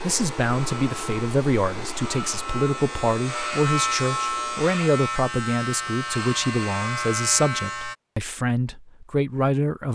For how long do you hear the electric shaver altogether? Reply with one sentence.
You can hear the electric shaver for 8 seconds altogether.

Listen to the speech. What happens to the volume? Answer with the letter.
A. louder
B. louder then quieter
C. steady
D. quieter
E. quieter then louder
C.